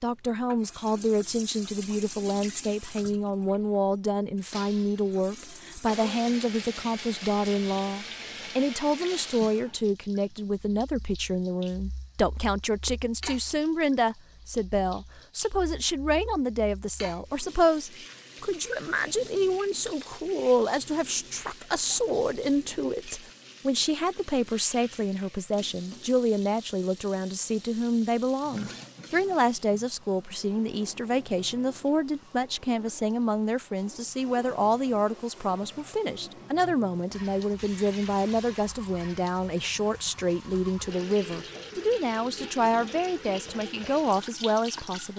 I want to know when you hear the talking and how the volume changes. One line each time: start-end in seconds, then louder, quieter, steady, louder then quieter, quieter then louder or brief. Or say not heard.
0.0-45.1 steady.